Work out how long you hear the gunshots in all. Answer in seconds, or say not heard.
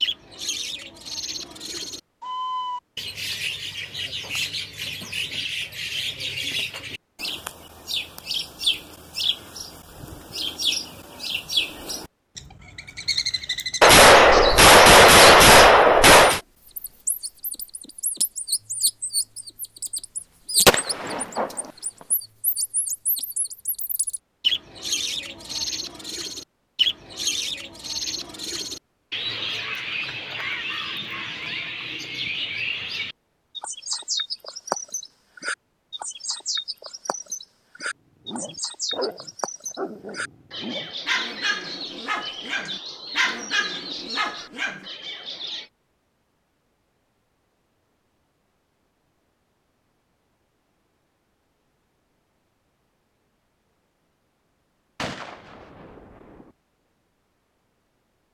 5 s.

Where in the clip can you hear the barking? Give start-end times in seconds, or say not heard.
38.2-44.9.